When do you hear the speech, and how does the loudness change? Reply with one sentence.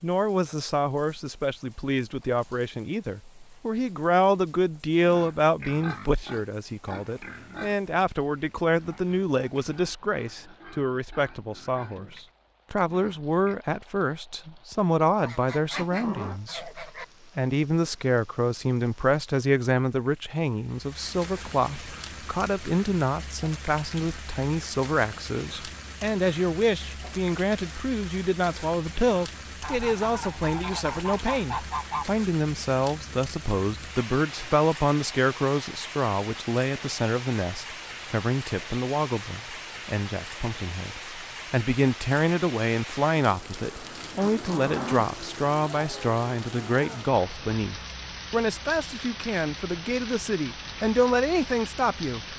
The speech can be heard from 0.0 to 52.2 s, at a steady volume.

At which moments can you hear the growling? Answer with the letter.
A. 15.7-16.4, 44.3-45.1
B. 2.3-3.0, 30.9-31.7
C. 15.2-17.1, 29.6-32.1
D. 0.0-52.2
A.